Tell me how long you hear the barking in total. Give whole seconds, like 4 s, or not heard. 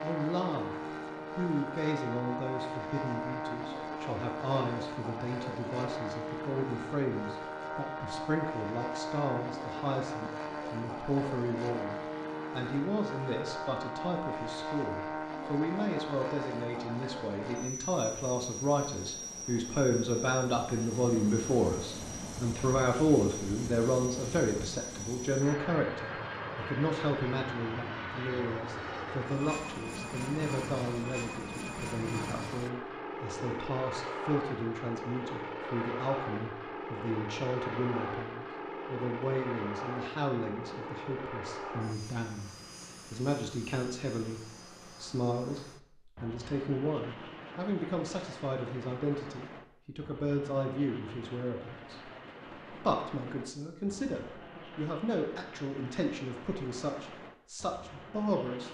not heard.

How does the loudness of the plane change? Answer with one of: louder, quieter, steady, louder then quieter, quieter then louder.
quieter.